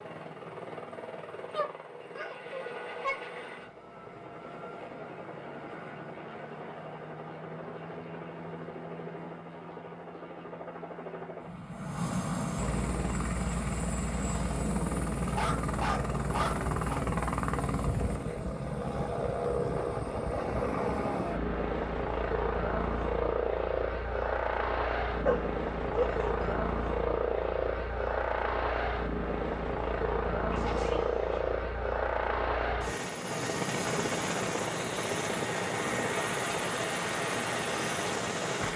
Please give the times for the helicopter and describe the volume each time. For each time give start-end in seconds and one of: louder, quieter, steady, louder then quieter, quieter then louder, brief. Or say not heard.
0.0-38.7 louder.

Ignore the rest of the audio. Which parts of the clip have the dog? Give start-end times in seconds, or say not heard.
1.6-3.2, 15.2-17.1, 25.2-26.6, 30.5-31.6.